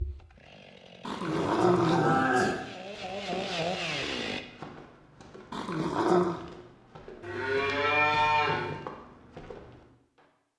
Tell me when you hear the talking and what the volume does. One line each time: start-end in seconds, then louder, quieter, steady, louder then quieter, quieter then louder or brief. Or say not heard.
not heard.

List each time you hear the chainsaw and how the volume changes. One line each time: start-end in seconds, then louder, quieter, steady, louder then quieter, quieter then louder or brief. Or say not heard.
0.0-4.5 louder.